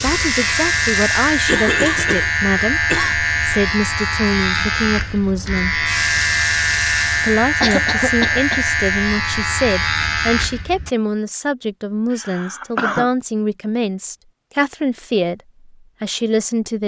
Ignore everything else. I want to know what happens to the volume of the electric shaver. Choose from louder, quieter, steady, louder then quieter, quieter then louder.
steady.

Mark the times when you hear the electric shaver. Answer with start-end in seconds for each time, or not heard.
0.0-10.9.